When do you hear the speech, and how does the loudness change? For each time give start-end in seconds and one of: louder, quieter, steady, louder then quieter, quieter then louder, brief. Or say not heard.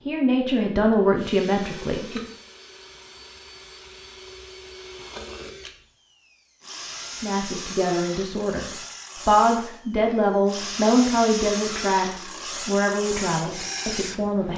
0.0-2.3 brief
7.2-8.7 brief
9.2-14.5 quieter.